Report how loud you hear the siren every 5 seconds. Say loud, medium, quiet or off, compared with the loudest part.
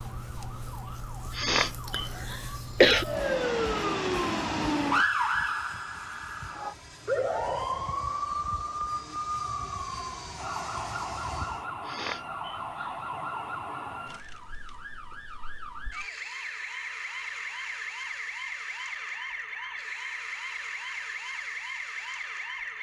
loud, loud, medium, medium, medium.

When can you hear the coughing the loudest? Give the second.
3 s.